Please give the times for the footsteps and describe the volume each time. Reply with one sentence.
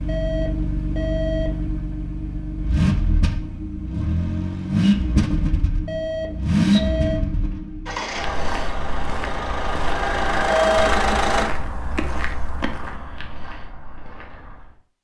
The footsteps can be heard from 8.1 to 14.8 s, getting quieter.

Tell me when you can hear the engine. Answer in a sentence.
You can hear the engine from 0.0 to 11.5 s.